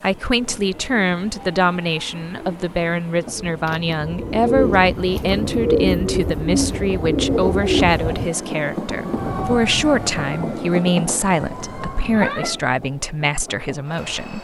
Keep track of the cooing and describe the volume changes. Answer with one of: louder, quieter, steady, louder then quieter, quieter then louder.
louder.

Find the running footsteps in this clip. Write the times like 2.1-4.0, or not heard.
not heard.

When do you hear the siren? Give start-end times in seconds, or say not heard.
9.1-12.6.